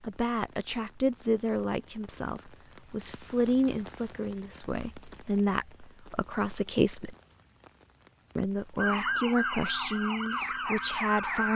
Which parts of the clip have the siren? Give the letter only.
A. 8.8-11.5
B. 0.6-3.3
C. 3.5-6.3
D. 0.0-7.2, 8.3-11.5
A.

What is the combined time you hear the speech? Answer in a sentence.
You can hear the speech for 10 seconds altogether.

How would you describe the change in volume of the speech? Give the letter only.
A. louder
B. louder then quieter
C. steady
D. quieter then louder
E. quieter
C.